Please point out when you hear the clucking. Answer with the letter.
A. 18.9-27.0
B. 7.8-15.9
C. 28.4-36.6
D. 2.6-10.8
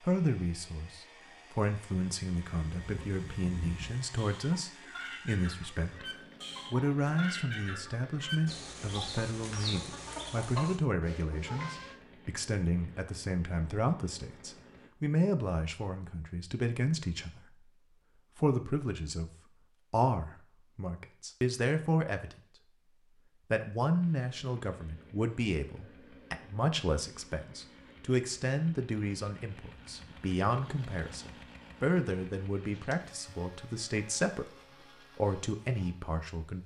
D.